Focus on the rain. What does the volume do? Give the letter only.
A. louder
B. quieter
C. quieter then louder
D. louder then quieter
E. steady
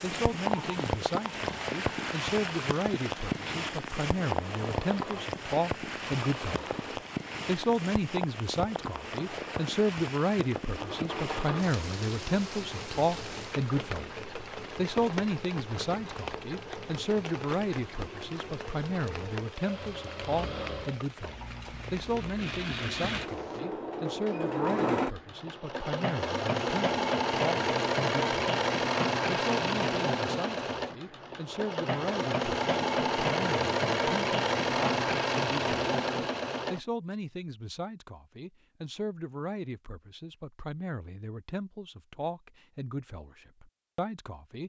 B.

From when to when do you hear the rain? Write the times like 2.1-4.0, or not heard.
0.0-23.6.